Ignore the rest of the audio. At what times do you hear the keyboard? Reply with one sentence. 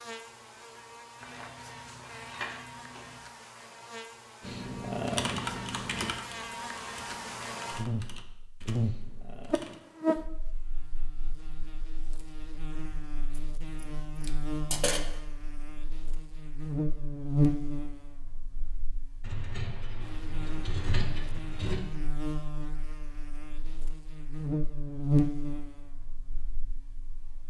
The keyboard can be heard from 4.4 to 9.8 s.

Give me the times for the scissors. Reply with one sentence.
You can hear the scissors from 1.2 to 3.2 s, from 13.3 to 15.1 s and from 19.2 to 21.8 s.